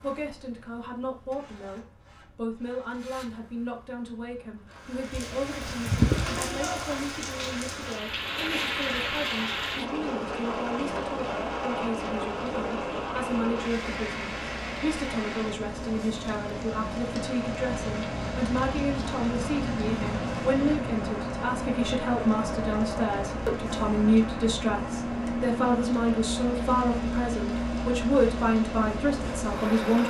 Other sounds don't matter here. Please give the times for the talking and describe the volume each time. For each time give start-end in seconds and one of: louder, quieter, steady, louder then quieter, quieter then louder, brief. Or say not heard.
0.0-30.0 louder.